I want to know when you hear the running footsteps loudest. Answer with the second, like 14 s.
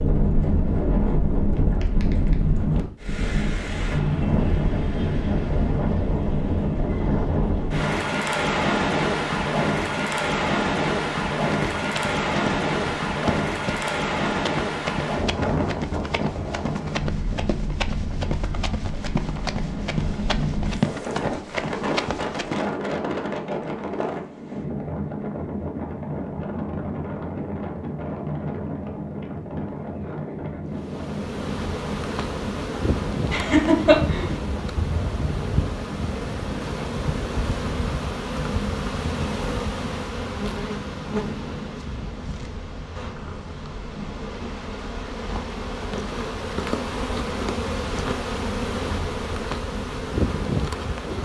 21 s.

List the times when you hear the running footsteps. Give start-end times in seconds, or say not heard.
11.4-22.6.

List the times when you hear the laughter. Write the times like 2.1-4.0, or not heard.
33.3-34.4.